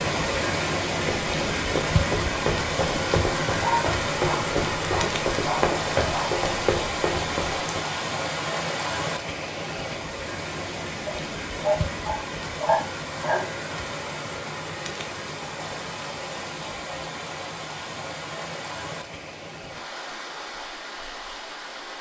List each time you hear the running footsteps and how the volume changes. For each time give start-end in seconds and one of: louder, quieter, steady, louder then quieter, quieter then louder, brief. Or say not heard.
0.9-7.8 steady.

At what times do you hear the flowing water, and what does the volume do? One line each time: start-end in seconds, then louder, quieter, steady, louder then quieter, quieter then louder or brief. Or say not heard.
0.0-21.9 quieter.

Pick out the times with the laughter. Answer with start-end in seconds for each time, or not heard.
not heard.